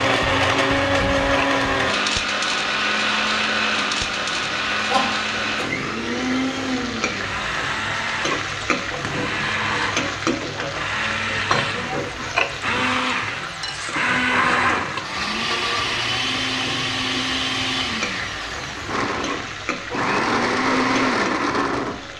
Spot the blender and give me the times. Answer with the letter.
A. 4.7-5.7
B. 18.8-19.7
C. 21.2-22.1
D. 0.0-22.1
D.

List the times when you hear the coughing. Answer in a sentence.
The coughing can be heard from 4.7 to 5.7 s.